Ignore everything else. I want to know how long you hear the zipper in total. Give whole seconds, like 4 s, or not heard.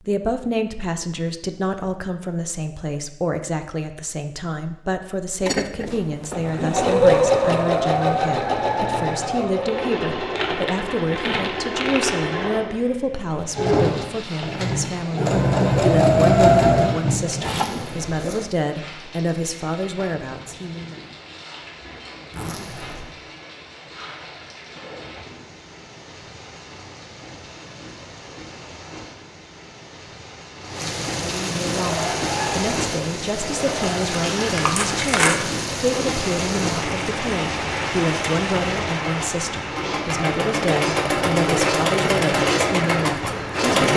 2 s.